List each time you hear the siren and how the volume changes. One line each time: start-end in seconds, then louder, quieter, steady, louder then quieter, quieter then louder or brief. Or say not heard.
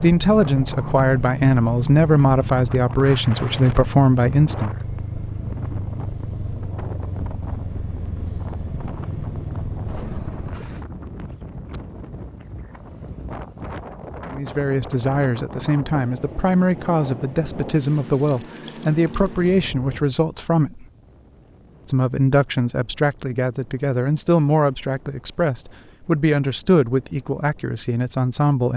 not heard.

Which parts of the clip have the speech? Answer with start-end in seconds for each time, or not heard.
0.0-4.7, 14.3-20.9, 21.9-28.7.